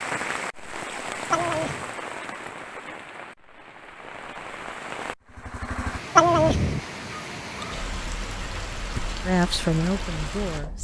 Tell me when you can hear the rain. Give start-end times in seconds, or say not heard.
0.0-10.8.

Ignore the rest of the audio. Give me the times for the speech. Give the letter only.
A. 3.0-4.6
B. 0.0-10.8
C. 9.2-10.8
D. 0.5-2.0
C.